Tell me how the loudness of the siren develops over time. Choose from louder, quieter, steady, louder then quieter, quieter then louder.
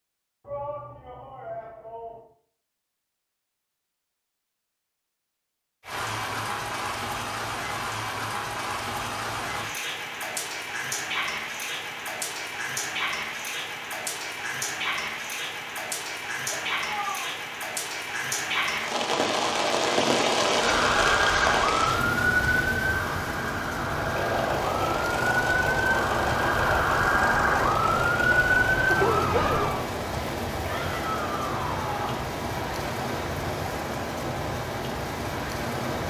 quieter then louder.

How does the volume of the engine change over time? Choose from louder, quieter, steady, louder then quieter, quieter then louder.
quieter.